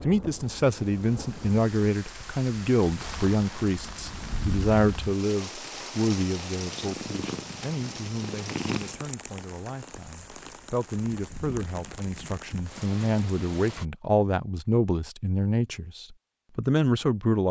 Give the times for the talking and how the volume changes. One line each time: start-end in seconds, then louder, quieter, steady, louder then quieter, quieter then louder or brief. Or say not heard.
0.0-17.4 quieter then louder.